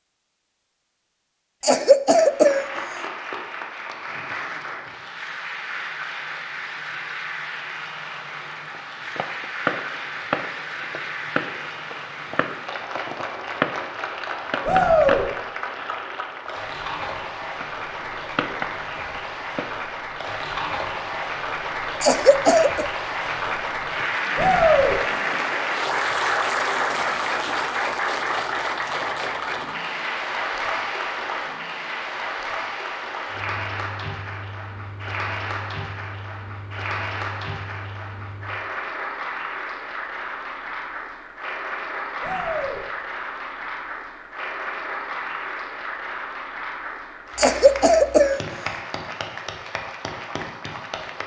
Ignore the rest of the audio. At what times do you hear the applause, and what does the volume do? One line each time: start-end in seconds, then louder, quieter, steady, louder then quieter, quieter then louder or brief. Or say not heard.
2.1-51.2 louder then quieter.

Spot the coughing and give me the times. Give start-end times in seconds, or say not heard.
1.6-2.6, 22.0-22.9, 47.4-48.4.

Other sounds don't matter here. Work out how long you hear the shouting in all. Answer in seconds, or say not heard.
2 s.